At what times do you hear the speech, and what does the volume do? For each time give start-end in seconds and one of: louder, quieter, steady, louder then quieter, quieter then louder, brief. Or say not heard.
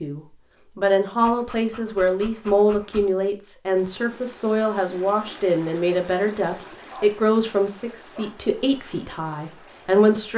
0.0-10.3 quieter.